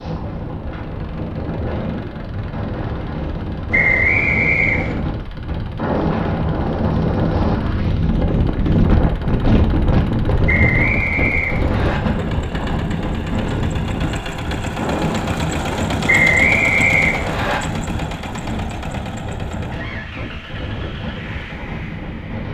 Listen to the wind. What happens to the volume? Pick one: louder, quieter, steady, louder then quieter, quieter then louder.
louder then quieter.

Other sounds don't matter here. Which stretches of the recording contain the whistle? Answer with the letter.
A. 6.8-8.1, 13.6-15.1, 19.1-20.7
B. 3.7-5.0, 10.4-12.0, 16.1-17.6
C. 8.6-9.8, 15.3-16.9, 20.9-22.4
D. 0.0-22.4
B.